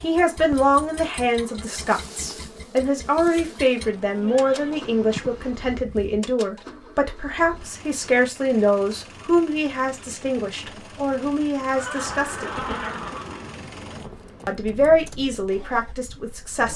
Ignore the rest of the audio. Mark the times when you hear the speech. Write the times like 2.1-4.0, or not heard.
0.0-12.5, 14.4-16.7.